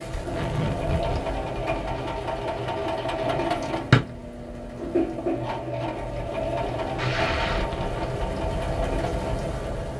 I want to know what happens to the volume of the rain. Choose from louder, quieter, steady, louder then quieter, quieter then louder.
quieter then louder.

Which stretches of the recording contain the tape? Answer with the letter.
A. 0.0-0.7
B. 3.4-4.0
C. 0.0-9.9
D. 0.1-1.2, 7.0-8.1
D.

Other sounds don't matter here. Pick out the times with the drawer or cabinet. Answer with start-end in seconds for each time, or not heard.
3.4-4.0.